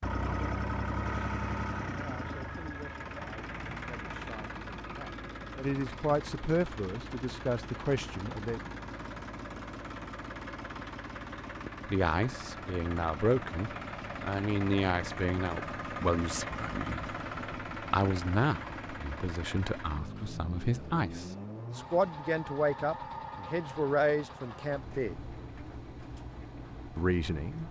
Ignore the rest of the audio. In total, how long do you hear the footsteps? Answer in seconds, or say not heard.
not heard.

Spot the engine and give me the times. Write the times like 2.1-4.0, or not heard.
0.0-27.6.